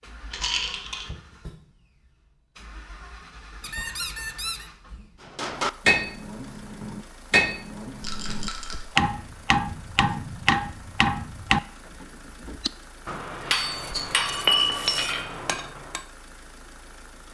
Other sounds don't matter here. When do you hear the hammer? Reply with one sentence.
The hammer can be heard from 5.2 to 16.1 s.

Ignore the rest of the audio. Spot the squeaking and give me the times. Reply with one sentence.
You can hear the squeaking from 3.6 to 4.7 s and from 13.7 to 15.2 s.